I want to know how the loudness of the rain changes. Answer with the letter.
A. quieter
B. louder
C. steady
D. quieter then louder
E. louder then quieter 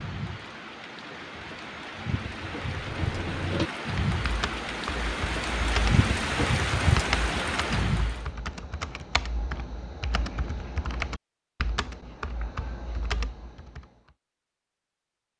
B.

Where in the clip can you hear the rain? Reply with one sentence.
The rain can be heard from 0.0 to 8.3 s.